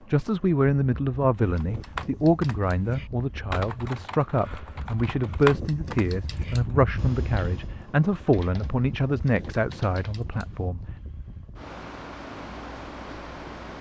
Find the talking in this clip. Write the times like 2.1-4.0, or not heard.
0.1-10.8.